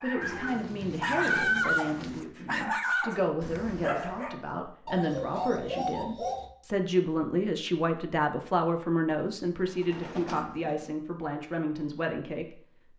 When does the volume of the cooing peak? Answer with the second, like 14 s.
6 s.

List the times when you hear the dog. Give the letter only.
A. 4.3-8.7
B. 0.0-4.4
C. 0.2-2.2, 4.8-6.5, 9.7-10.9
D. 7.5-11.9
B.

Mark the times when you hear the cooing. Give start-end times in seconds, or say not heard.
0.2-2.2, 4.8-6.5, 9.7-10.9.